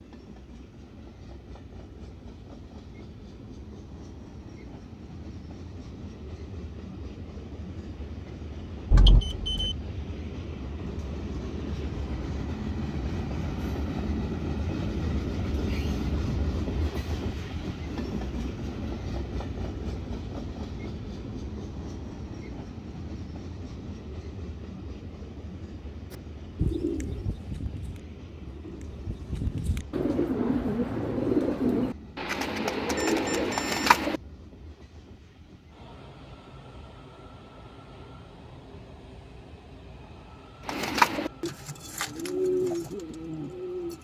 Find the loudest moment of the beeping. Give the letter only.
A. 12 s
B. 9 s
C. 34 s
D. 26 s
B.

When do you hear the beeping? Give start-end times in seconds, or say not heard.
8.9-9.8, 33.0-33.9.